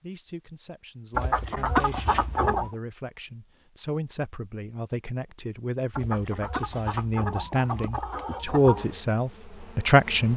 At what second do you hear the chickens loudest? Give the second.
2 s.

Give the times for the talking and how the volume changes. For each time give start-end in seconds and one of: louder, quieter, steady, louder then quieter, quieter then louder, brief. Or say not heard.
0.0-10.3 louder.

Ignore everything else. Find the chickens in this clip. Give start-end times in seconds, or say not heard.
1.1-2.8, 5.9-8.8.